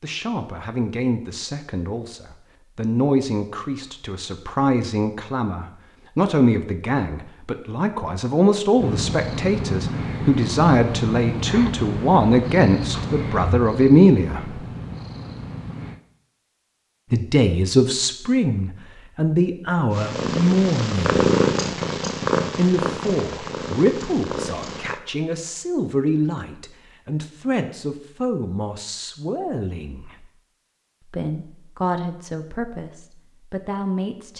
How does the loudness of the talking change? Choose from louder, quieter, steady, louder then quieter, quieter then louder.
louder then quieter.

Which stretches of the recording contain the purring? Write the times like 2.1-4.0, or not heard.
8.8-16.0, 19.9-25.0.